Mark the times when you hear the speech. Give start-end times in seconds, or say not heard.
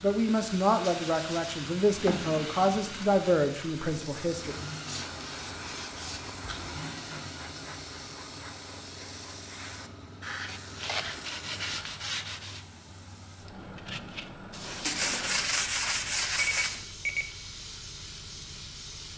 0.0-4.5.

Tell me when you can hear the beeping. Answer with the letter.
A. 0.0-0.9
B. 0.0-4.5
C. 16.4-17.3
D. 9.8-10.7
C.